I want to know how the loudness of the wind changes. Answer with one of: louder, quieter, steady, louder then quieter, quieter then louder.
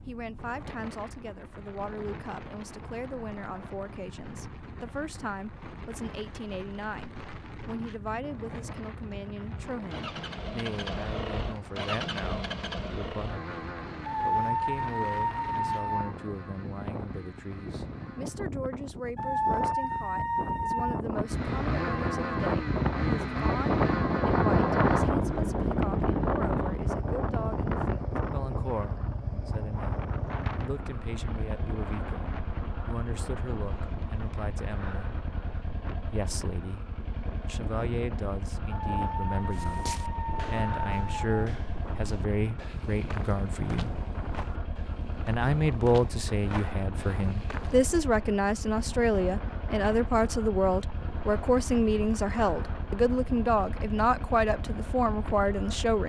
louder then quieter.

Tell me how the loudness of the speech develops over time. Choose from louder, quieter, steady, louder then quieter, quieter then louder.
louder.